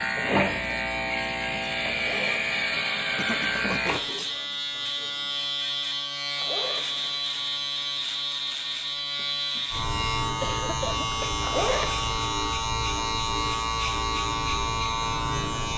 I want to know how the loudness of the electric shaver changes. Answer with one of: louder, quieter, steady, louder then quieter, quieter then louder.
steady.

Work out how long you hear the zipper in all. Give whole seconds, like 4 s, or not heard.
2 s.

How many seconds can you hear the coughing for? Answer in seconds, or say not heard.
2 s.